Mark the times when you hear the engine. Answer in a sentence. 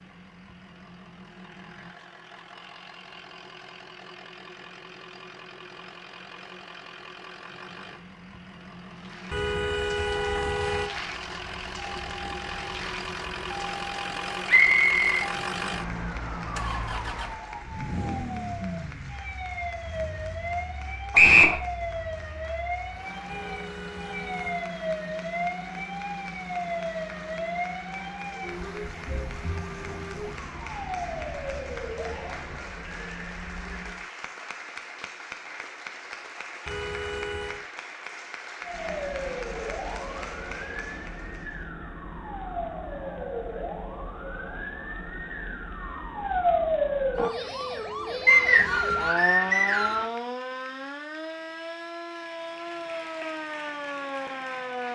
You can hear the engine from 0.0 to 32.6 s.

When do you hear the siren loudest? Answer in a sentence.
The volume of the siren peaks at 47 seconds.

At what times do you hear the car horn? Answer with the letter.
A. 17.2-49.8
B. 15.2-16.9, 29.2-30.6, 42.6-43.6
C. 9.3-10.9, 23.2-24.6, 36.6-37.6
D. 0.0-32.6
C.